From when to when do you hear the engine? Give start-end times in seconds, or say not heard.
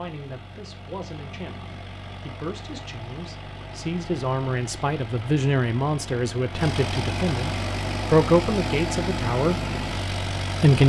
0.0-10.8.